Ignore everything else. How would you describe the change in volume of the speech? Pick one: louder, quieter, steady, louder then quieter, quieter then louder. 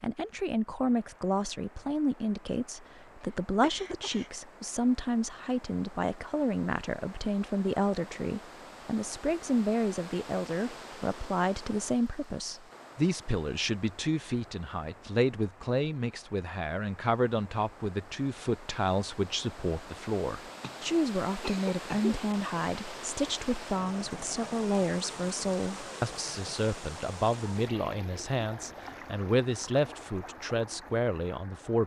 steady.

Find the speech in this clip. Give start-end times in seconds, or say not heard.
0.0-31.8.